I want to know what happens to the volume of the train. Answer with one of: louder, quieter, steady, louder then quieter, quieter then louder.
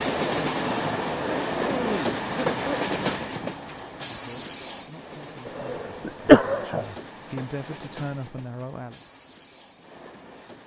quieter.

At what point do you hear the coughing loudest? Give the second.
6 s.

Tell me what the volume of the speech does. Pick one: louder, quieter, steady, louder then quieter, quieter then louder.
louder.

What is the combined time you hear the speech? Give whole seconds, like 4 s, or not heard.
5 s.